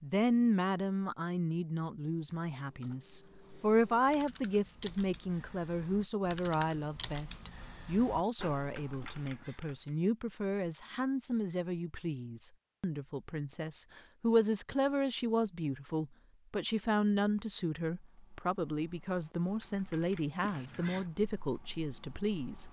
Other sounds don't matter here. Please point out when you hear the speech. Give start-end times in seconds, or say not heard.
0.0-22.6.